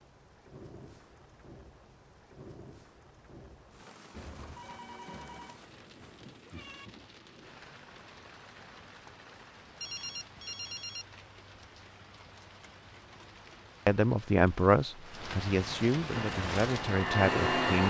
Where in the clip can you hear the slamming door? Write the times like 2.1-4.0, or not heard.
not heard.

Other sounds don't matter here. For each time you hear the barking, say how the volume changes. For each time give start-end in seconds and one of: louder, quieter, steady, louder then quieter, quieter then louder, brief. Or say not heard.
not heard.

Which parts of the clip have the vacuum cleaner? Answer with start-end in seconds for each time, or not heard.
16.1-17.8.